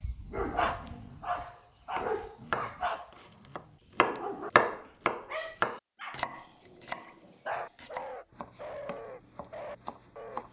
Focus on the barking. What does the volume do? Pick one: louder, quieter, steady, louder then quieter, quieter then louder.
quieter.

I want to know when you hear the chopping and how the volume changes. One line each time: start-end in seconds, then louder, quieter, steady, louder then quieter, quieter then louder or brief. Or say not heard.
1.5-10.4 louder then quieter.